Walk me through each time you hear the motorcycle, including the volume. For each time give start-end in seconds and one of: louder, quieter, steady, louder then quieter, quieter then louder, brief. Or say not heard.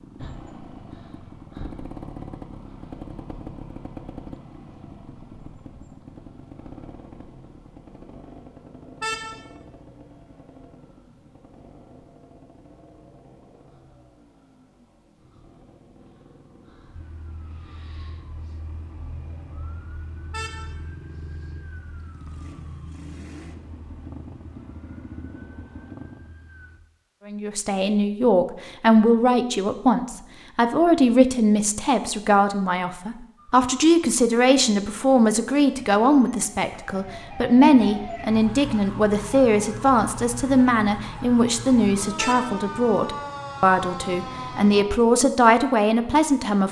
0.0-26.4 quieter then louder.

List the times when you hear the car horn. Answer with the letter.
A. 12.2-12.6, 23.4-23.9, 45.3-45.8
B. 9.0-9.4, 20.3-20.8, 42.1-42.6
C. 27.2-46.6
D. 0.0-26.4
B.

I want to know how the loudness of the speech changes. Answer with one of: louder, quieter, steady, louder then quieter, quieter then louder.
steady.